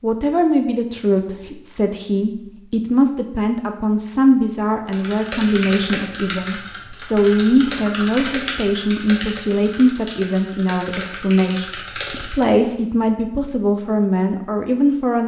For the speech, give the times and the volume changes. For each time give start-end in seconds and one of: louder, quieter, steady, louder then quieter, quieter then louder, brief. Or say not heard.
0.0-15.2 steady.